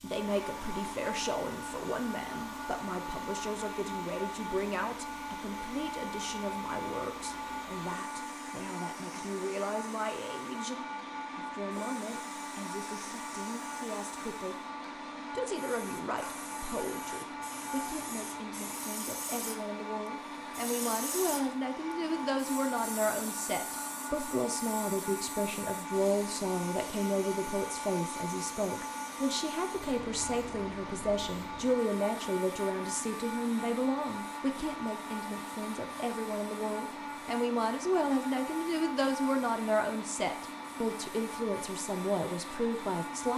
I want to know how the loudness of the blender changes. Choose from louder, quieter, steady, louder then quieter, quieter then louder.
steady.